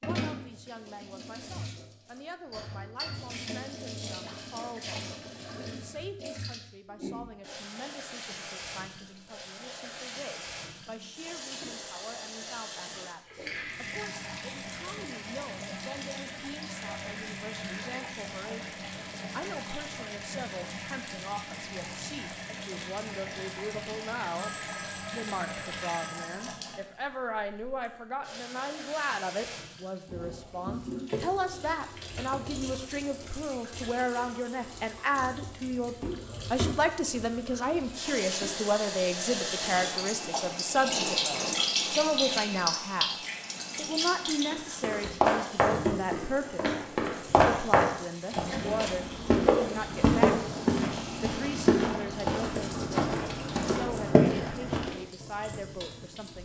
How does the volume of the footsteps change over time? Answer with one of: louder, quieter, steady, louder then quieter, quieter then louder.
steady.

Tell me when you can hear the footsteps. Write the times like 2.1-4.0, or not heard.
44.5-55.0.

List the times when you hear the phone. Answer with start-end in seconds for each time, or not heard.
24.4-26.8.